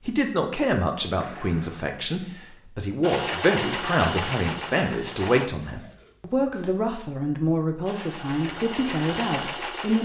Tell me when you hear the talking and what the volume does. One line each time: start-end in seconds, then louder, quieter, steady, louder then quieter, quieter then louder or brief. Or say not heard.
0.0-9.9 steady.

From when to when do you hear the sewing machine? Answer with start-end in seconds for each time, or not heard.
3.0-5.5, 7.8-9.9.